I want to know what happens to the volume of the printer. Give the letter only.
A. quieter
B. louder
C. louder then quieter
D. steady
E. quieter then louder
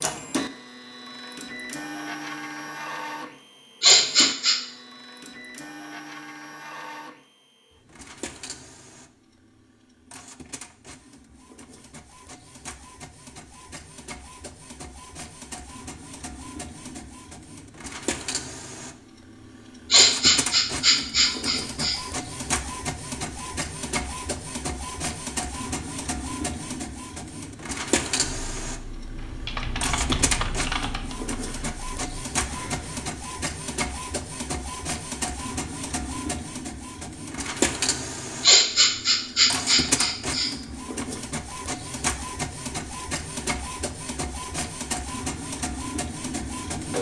B.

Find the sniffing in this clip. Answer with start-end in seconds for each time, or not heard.
3.8-4.5, 19.9-22.0, 38.4-40.5.